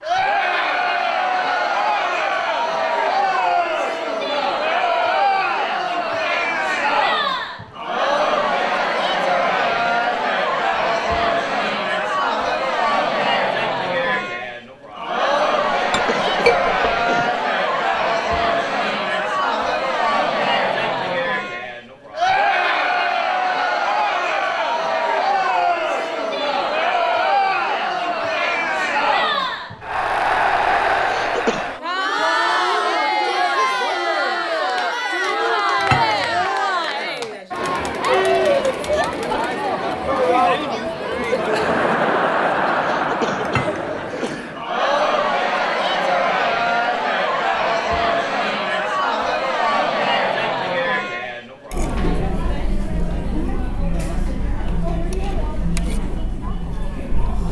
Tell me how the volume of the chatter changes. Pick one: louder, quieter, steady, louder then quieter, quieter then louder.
steady.